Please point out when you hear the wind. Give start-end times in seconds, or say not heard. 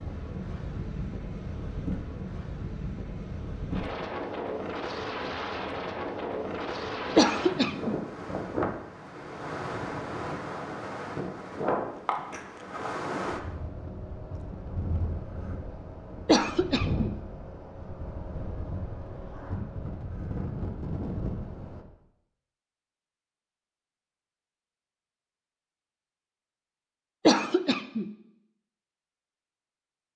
0.0-21.9.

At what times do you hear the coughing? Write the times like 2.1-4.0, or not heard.
7.2-8.0, 16.2-17.1, 27.2-28.1.